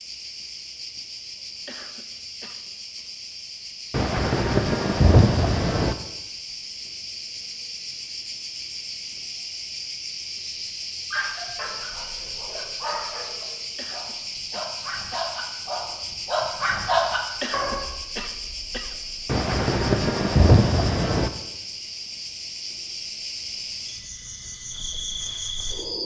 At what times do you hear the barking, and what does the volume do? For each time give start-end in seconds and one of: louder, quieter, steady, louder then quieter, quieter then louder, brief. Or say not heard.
11.1-17.9 louder.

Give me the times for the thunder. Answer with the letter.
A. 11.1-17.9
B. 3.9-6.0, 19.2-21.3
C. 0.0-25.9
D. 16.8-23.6
B.